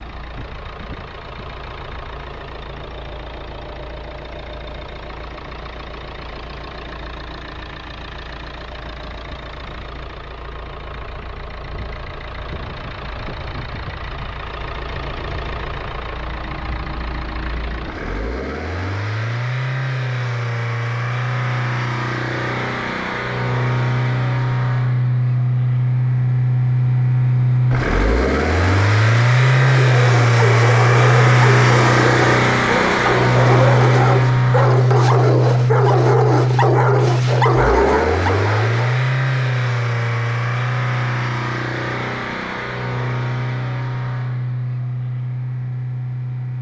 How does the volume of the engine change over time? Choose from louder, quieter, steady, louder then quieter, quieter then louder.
louder then quieter.